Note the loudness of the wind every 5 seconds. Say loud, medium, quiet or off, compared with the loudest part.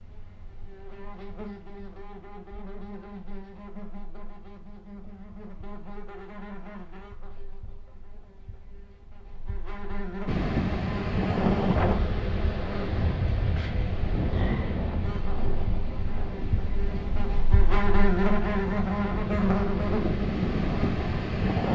off, off, loud, medium, loud.